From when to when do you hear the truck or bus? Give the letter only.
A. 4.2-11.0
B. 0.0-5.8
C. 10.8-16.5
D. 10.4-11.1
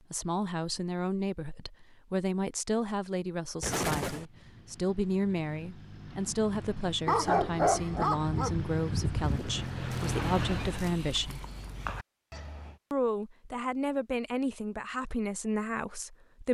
A.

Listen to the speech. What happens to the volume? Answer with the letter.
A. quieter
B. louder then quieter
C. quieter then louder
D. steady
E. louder
D.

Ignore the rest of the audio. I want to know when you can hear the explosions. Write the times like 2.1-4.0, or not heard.
3.6-4.2.